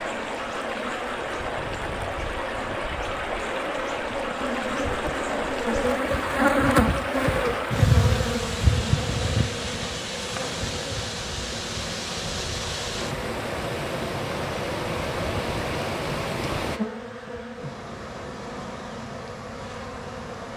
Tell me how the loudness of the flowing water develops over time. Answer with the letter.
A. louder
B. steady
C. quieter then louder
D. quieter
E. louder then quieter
B.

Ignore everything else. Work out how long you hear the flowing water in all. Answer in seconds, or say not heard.
17 s.